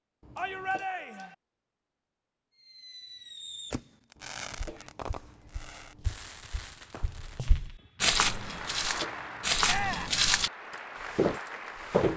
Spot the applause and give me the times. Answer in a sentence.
You can hear the applause from 8.2 to 12.1 s.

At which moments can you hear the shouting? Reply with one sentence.
You can hear the shouting from 0.3 to 1.4 s and from 9.7 to 10.2 s.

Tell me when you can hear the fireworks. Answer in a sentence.
The fireworks can be heard from 2.5 to 8.4 s.